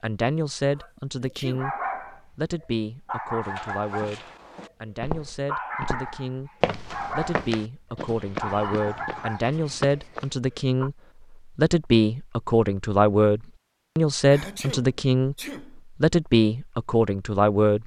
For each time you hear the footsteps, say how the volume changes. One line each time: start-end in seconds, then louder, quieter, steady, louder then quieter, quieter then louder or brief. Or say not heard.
3.4-10.3 louder then quieter.